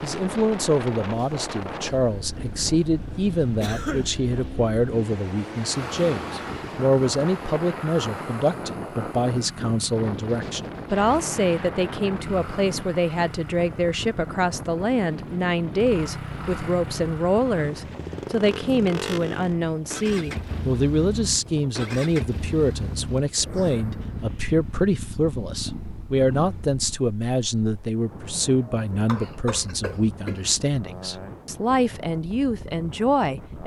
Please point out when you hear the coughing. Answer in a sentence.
The coughing can be heard from 3.6 to 4.2 s and from 28.6 to 30.4 s.